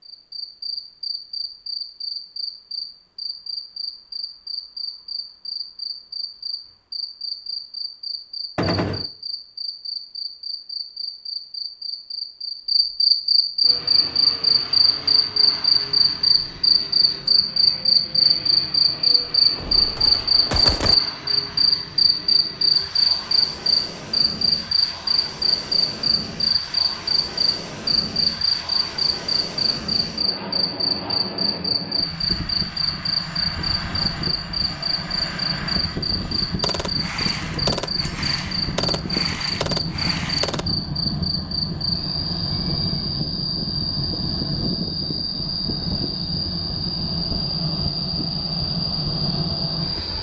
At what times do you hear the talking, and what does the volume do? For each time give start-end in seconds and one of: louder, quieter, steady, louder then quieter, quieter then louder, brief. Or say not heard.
not heard.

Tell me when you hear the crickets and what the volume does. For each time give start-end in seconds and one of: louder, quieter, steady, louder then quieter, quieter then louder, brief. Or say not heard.
0.0-50.1 louder then quieter.